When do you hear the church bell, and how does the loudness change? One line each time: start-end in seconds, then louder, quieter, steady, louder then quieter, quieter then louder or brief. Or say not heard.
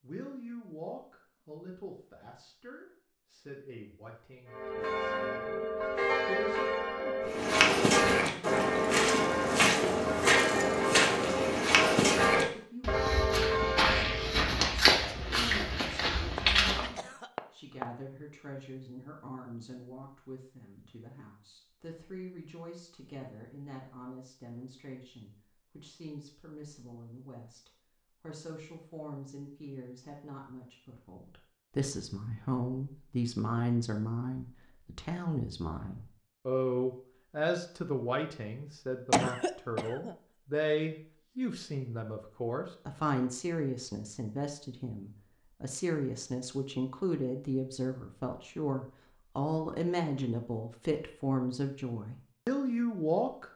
4.5-14.4 steady.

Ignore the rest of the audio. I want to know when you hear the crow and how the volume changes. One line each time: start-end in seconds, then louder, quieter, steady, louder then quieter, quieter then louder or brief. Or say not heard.
not heard.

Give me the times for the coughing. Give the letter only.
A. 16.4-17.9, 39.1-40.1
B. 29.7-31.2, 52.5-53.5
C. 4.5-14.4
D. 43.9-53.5
A.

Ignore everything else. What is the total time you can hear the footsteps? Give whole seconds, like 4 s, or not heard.
10 s.